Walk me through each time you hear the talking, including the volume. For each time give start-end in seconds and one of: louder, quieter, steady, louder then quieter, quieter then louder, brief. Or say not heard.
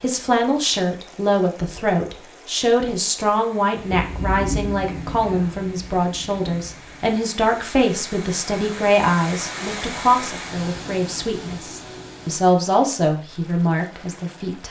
0.0-14.6 steady.